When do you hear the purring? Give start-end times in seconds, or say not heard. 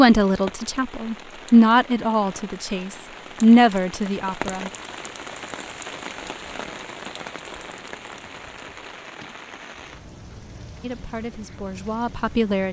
not heard.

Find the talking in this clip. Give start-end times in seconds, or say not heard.
0.0-4.7, 10.8-12.6.